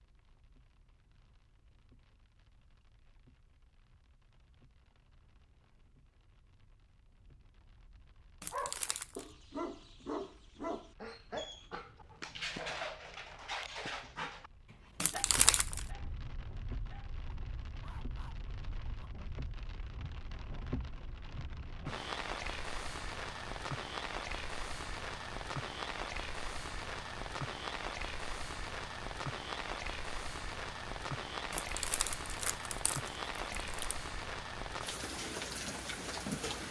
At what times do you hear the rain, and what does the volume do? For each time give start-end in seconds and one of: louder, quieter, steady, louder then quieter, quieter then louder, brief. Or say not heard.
0.0-36.6 louder.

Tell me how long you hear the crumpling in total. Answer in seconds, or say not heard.
4 s.